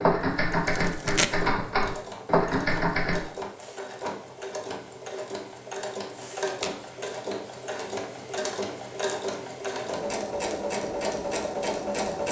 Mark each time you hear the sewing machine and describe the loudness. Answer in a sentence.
You can hear the sewing machine from 0.0 to 12.2 s, getting louder.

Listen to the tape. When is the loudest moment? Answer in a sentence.
The volume of the tape peaks at 1 second.